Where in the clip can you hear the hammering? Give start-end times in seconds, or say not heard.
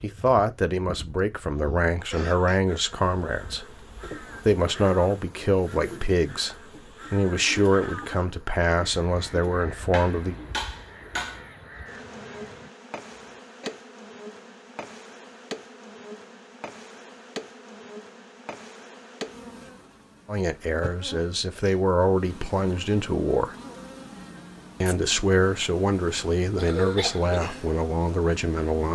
9.9-11.4.